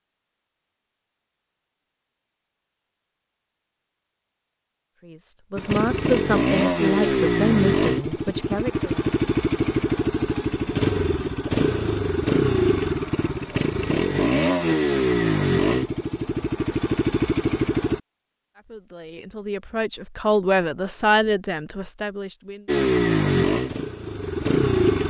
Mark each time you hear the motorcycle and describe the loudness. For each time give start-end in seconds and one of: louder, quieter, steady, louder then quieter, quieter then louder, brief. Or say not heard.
5.5-18.0 steady
22.6-25.0 brief.